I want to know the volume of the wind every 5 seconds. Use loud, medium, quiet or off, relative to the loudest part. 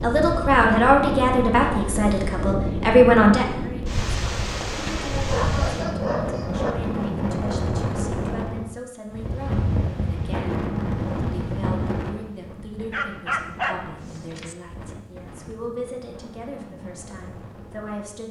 loud, loud, loud, quiet.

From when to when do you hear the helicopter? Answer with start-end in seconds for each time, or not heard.
not heard.